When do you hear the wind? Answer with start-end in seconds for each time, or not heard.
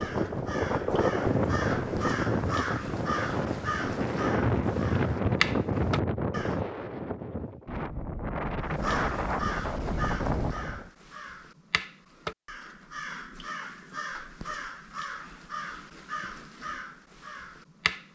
0.0-10.9.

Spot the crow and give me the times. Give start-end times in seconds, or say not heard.
0.0-6.6, 8.7-18.1.